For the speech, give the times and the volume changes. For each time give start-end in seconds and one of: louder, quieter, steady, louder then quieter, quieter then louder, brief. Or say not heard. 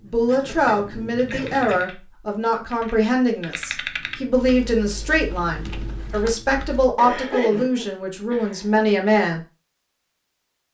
0.0-9.4 steady.